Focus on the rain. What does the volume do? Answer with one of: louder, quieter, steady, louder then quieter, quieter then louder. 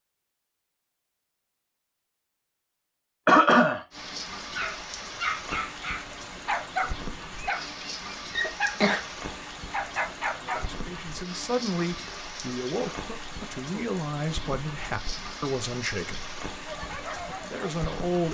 steady.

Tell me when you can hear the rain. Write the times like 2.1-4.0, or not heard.
3.9-18.2.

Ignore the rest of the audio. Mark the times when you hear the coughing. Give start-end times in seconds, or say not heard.
3.2-3.8, 8.4-9.1, 12.9-13.8.